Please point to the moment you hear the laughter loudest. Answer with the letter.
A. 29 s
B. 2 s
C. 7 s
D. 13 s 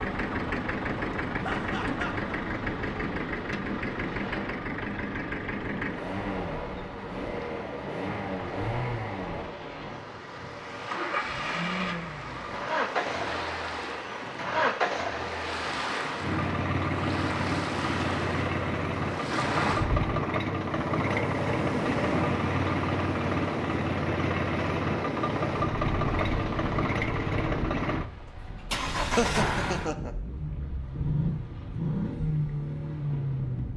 A.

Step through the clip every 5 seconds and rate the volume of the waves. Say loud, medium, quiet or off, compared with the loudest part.
medium, medium, medium, loud, loud, medium, medium.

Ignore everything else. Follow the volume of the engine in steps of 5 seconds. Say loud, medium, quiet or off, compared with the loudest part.
loud, medium, loud, loud, loud, loud, loud.